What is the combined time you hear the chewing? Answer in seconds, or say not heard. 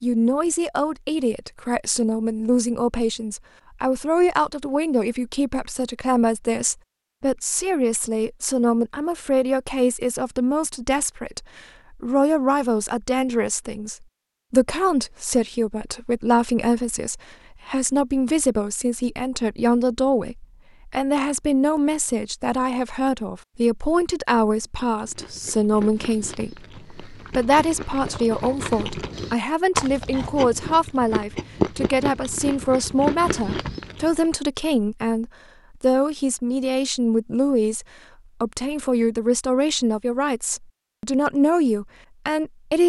9 s.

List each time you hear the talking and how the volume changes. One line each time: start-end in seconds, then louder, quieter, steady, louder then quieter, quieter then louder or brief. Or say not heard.
0.0-42.8 steady.